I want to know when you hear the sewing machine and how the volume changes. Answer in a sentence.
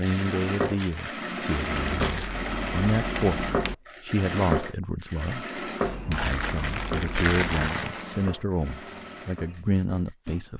You can hear the sewing machine from 0.0 to 10.4 s, getting quieter.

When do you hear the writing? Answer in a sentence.
You can hear the writing from 2.0 to 3.8 s and from 5.8 to 7.7 s.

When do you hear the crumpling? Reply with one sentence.
The crumpling can be heard from 0.1 to 2.5 s and from 6.1 to 8.1 s.